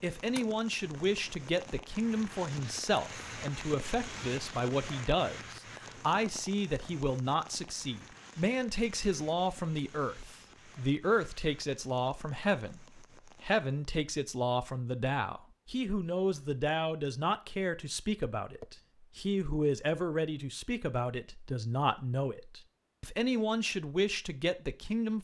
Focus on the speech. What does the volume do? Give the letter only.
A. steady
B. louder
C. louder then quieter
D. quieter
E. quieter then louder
A.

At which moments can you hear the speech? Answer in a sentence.
You can hear the speech from 0.0 to 25.1 s.